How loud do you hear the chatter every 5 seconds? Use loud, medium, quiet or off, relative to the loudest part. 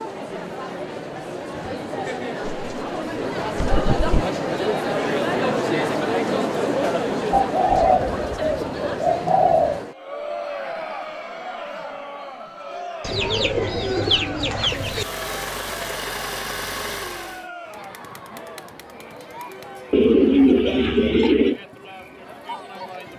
loud, loud, medium, quiet, quiet.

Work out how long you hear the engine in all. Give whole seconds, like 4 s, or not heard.
3 s.